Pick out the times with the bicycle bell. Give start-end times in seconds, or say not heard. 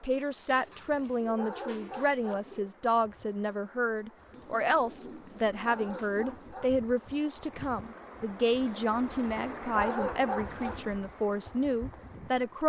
not heard.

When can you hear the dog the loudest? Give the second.
10 s.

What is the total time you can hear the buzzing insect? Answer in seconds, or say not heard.
not heard.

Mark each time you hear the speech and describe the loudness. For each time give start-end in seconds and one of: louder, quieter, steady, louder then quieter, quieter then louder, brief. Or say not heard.
0.0-12.6 steady.